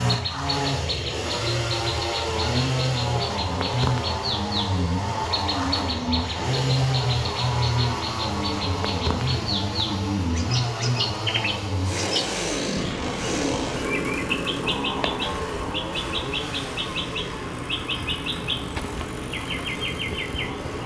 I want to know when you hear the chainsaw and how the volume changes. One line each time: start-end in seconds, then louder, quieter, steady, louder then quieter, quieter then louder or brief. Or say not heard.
0.0-20.8 quieter.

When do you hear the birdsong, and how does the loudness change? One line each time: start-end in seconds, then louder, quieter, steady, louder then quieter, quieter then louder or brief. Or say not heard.
0.0-20.8 steady.